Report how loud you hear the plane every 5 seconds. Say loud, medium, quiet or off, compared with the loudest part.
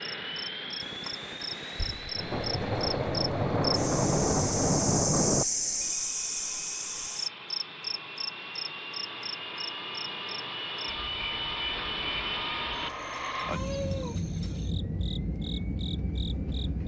medium, medium, loud, loud.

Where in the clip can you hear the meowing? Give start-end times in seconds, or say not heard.
0.8-2.0, 13.5-14.2.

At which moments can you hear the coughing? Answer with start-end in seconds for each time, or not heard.
not heard.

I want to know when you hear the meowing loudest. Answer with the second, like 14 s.
14 s.